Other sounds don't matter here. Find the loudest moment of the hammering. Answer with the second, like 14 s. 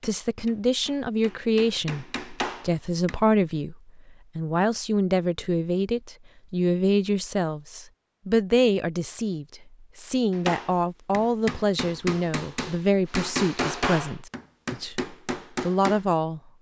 14 s.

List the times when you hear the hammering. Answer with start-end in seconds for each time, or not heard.
0.0-3.2, 10.3-16.1.